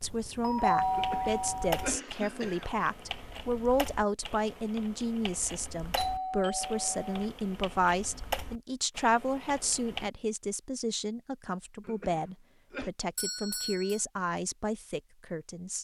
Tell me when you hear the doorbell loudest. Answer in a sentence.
The volume of the doorbell peaks at 1 second.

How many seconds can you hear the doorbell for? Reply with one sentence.
You can hear the doorbell for 4 seconds altogether.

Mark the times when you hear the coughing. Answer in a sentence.
You can hear the coughing from 0.9 to 2.7 s and from 11.8 to 12.9 s.